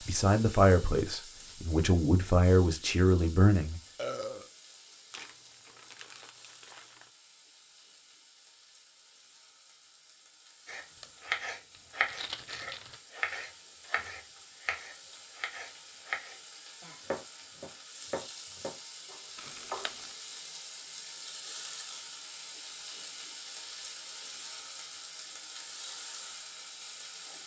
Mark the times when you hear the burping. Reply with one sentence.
The burping can be heard from 4.0 to 4.5 s.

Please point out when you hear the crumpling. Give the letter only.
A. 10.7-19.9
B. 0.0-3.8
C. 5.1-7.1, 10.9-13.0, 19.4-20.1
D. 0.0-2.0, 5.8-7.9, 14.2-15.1
C.